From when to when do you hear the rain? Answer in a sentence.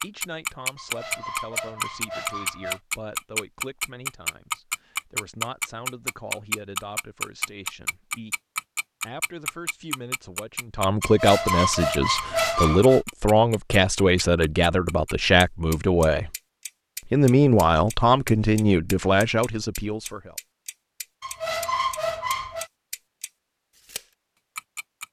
The rain can't be heard in this clip.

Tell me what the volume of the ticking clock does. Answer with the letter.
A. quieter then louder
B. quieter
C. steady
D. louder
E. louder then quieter
B.